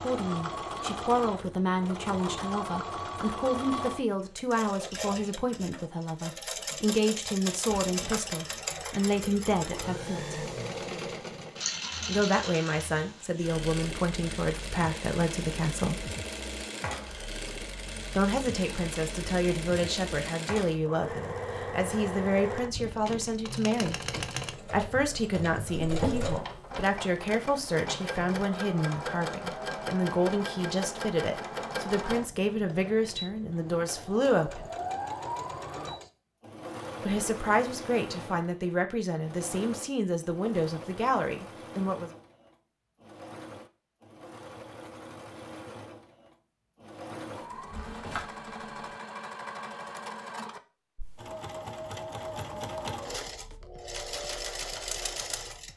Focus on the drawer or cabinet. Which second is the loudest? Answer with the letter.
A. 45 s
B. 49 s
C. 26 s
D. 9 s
C.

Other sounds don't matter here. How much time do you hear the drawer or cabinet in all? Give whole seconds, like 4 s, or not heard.
2 s.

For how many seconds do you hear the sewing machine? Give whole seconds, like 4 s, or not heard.
56 s.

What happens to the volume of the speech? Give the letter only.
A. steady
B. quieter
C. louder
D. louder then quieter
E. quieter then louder
A.